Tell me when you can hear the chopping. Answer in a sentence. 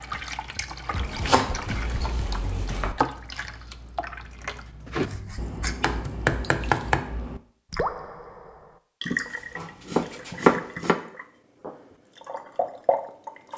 You can hear the chopping from 0.9 to 3.0 s, from 5.0 to 7.0 s and from 9.1 to 11.0 s.